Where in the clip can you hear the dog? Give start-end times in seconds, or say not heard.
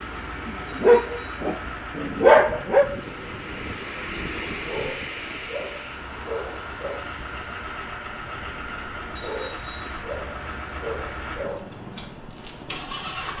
0.5-2.9, 4.7-7.0, 9.2-11.7.